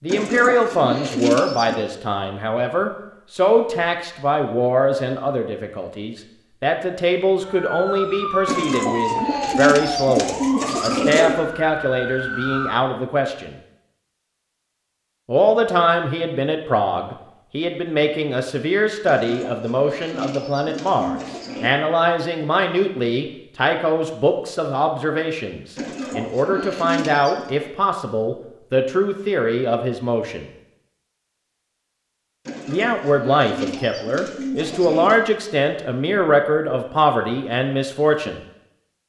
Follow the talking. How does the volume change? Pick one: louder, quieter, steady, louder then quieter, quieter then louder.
steady.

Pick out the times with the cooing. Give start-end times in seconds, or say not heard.
0.1-1.8, 8.4-11.4, 19.1-21.7, 25.8-27.5, 32.5-35.2.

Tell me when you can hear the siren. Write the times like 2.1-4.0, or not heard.
7.4-12.8.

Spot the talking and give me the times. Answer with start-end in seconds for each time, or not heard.
0.0-13.6, 15.2-30.4, 32.6-38.4.